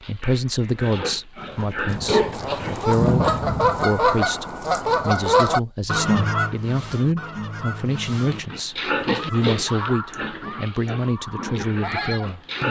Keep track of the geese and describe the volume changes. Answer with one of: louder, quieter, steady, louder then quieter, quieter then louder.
quieter.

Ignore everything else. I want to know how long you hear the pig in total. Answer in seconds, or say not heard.
8 s.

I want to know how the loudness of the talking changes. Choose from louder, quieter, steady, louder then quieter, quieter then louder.
steady.